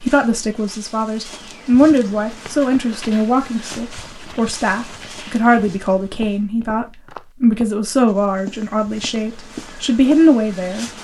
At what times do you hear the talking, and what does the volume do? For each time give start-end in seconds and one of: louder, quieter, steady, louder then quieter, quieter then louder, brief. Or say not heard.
0.0-11.0 steady.